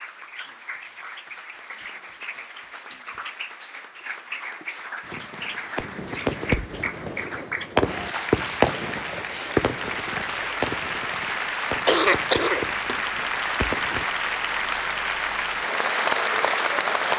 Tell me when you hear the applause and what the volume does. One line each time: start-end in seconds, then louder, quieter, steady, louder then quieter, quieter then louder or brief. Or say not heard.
0.0-17.1 louder.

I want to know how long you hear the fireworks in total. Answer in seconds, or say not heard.
9 s.